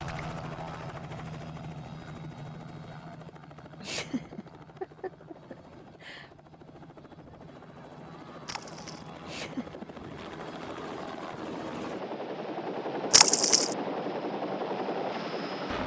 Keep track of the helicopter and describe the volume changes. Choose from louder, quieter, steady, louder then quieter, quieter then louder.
quieter then louder.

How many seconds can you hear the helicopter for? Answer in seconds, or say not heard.
16 s.